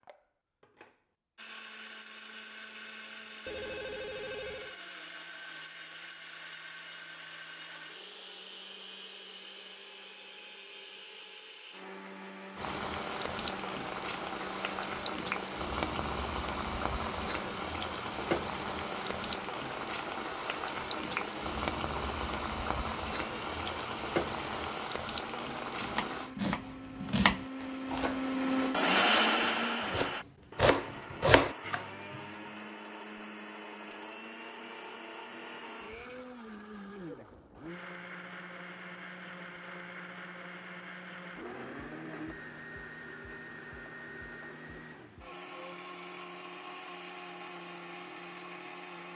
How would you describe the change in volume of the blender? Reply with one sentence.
The volume of the blender goes up, then down.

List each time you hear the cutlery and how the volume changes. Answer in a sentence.
You can't hear the cutlery here.